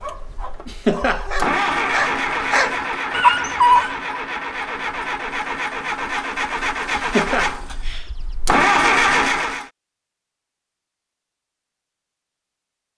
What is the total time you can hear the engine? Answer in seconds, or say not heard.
10 s.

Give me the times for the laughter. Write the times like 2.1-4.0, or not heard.
0.7-1.8, 7.0-8.1.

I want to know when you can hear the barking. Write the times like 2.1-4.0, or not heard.
0.0-4.0.